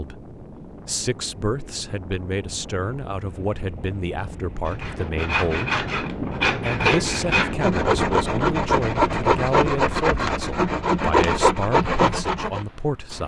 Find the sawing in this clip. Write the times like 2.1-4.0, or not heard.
4.7-12.7.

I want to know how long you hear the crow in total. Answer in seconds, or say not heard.
not heard.